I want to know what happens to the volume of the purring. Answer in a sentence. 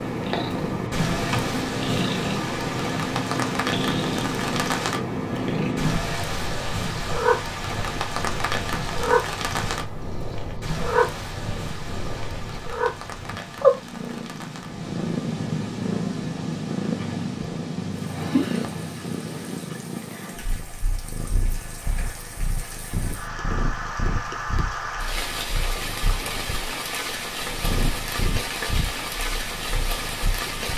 The loudness of the purring goes down.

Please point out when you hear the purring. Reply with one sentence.
You can hear the purring from 0.0 to 30.7 s.